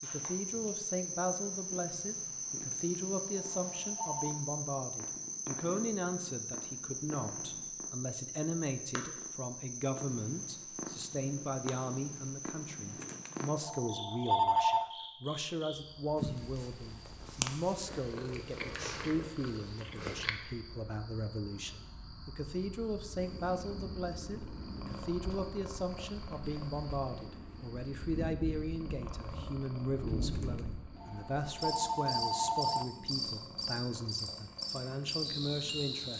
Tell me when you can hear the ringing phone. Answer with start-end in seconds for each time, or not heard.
2.7-4.4, 13.0-14.8, 30.4-32.9.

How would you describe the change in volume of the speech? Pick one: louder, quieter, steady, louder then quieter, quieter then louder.
steady.